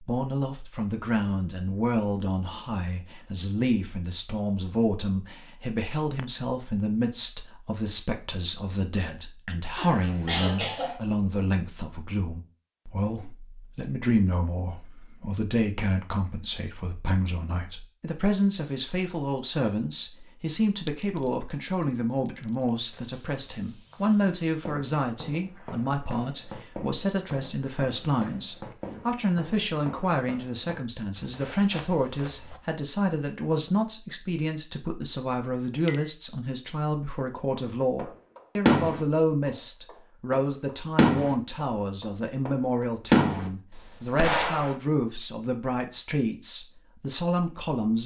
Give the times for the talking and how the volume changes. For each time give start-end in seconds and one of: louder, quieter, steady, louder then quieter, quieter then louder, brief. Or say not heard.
0.0-48.0 steady.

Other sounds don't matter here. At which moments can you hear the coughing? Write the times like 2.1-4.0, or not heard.
9.8-10.9.